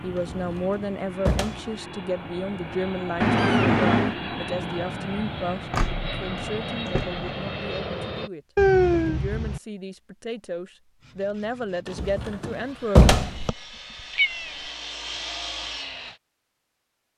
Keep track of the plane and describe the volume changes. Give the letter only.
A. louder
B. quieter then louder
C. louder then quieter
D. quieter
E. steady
A.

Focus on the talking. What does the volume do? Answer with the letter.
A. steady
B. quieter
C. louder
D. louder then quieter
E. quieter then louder
E.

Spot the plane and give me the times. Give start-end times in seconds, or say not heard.
0.0-8.3.